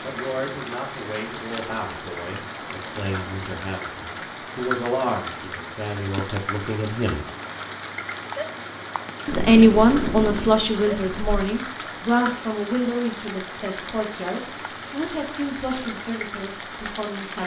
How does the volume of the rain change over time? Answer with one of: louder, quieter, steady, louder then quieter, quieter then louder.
steady.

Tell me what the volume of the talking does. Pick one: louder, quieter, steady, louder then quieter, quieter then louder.
louder then quieter.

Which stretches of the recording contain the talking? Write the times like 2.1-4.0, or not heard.
0.0-7.2, 9.2-17.4.